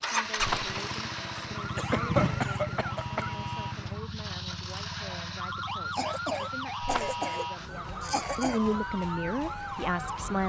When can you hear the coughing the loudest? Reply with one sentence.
The volume of the coughing peaks at 2 seconds.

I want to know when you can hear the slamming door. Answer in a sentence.
You can hear the slamming door from 0.3 to 0.8 s and from 6.8 to 7.2 s.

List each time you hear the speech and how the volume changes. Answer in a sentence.
The speech can be heard from 0.0 to 10.4 s, getting louder.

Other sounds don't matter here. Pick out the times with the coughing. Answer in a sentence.
You can hear the coughing from 1.4 to 3.4 s and from 5.9 to 8.6 s.